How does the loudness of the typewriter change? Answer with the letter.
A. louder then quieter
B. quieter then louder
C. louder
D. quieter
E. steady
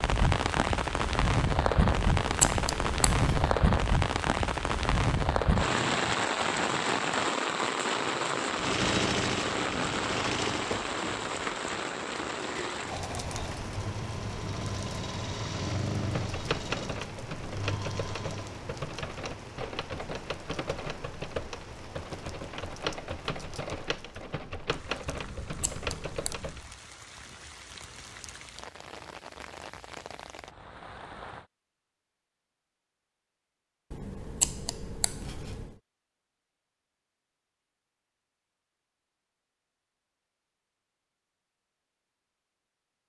E.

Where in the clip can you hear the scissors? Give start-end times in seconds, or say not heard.
1.9-3.5, 25.1-26.4, 33.9-35.8.